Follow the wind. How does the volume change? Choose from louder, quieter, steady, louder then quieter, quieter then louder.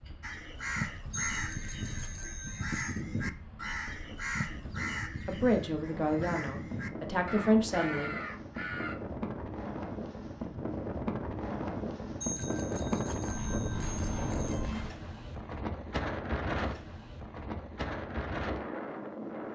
louder.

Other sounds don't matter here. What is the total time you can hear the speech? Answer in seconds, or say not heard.
3 s.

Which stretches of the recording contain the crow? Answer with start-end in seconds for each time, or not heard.
0.2-8.9.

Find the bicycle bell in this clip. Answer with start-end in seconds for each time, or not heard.
1.1-3.0, 12.2-14.7.